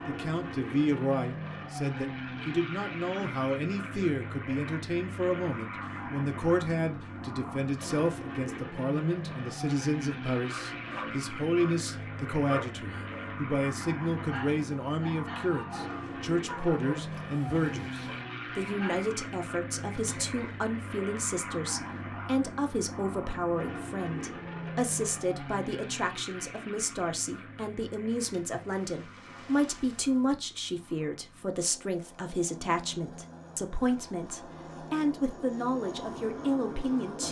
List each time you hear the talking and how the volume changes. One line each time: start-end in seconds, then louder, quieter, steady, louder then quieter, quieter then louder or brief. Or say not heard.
0.1-37.2 steady.